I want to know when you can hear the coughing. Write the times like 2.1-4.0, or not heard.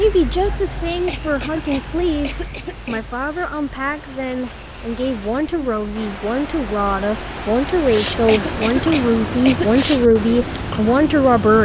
1.1-3.0, 8.2-9.8.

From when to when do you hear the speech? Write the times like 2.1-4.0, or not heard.
0.0-11.6.